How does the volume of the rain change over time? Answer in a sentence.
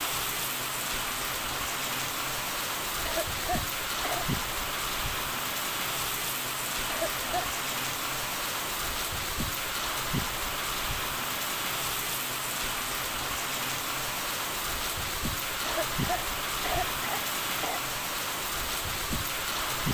The loudness of the rain stays about the same.